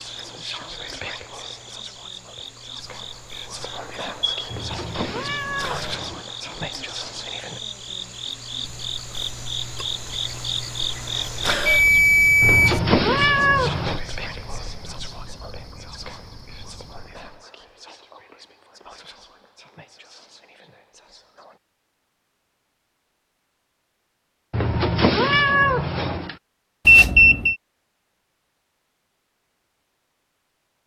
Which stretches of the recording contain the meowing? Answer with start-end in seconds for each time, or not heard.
4.5-6.2, 12.4-14.0, 24.5-26.4.